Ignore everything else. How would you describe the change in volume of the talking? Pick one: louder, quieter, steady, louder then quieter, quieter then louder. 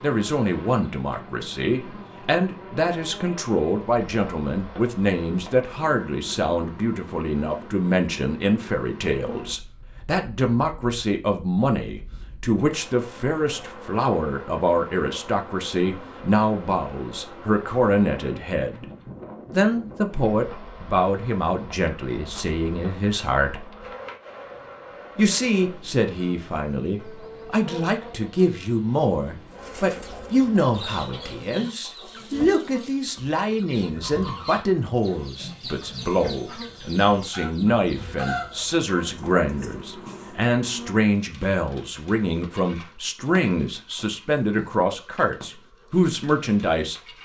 steady.